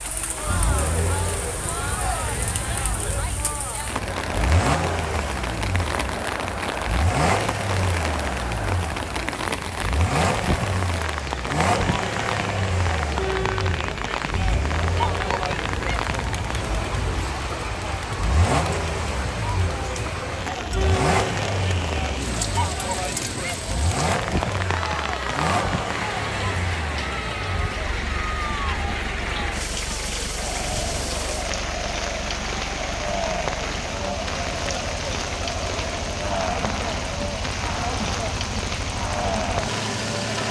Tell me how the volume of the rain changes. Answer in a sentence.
The volume of the rain stays about the same.